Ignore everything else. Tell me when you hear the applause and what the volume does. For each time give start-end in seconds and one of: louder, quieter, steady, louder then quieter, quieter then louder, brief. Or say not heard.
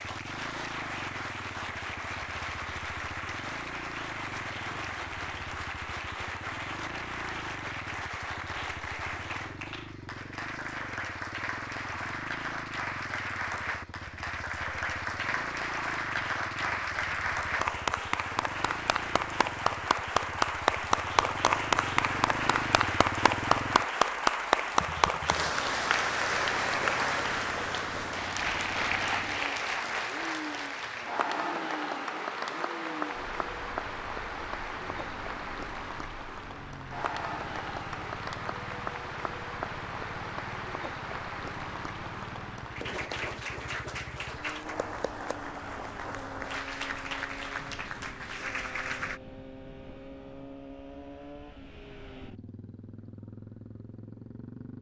0.0-49.2 louder then quieter.